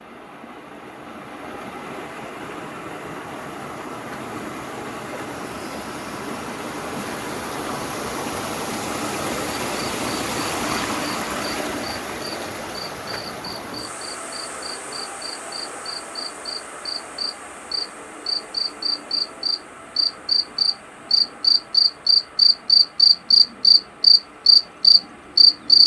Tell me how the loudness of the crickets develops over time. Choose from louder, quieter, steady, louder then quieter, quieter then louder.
louder.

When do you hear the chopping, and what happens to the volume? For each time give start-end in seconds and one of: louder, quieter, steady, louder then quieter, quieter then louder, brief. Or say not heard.
not heard.